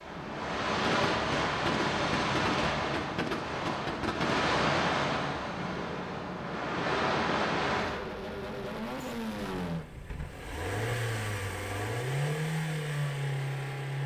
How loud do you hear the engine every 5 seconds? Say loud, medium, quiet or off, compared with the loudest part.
off, loud, loud.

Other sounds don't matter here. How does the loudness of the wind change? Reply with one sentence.
The volume of the wind stays about the same.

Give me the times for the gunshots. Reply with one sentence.
The gunshots can be heard from 0.8 to 4.5 s.